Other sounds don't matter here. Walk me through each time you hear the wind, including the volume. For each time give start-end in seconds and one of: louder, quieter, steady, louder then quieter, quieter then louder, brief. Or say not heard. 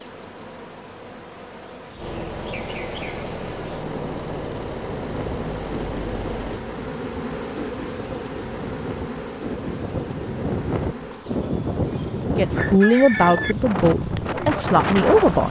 5.0-15.4 louder.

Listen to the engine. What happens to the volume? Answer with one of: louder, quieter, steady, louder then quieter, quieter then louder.
louder.